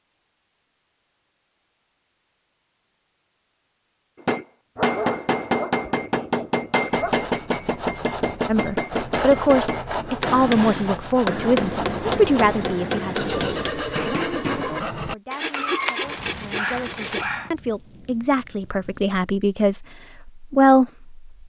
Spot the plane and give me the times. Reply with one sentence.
You can't hear the plane here.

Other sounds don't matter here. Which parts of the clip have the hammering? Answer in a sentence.
You can hear the hammering from 4.2 to 14.7 s.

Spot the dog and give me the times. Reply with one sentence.
You can hear the dog from 4.8 to 7.2 s and from 15.5 to 17.5 s.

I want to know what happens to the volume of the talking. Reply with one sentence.
The volume of the talking goes down, then up.